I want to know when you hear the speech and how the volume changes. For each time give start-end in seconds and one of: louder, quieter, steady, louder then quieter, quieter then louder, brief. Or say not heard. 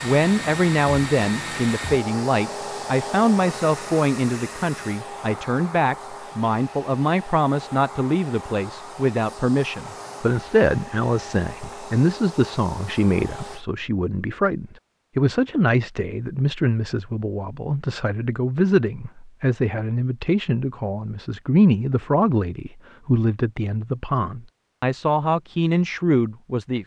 0.0-26.8 steady.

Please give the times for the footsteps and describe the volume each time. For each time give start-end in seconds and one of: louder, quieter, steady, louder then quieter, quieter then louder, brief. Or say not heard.
not heard.